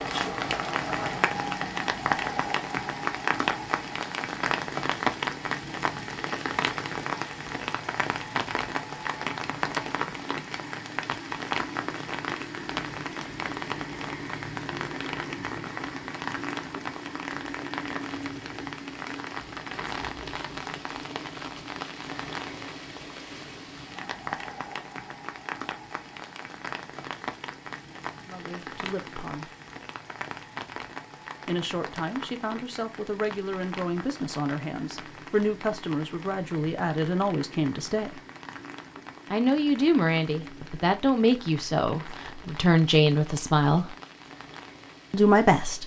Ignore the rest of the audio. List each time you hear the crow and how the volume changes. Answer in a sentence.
You can't hear the crow here.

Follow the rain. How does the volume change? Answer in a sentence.
The loudness of the rain goes down.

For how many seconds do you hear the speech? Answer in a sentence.
You can hear the speech for 13 seconds altogether.